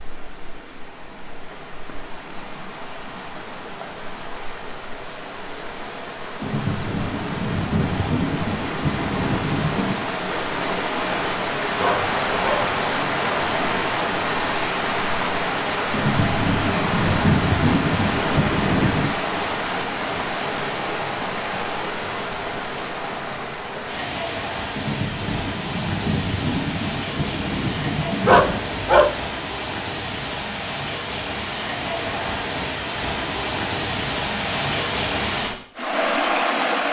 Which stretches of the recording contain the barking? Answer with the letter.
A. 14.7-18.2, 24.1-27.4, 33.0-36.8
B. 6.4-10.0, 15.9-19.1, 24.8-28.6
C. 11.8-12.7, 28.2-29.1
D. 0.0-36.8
C.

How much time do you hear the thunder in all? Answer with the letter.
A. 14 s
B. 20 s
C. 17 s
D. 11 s
D.